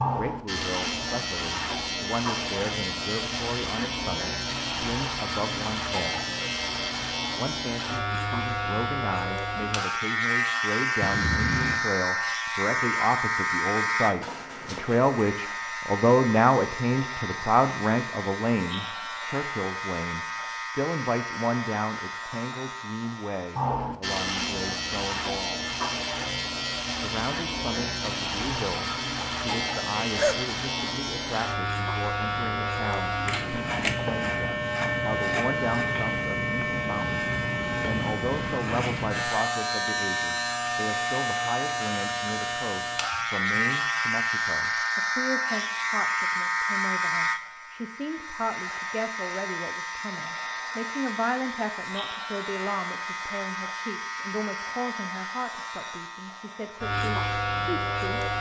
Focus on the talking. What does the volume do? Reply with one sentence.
The volume of the talking goes up, then down.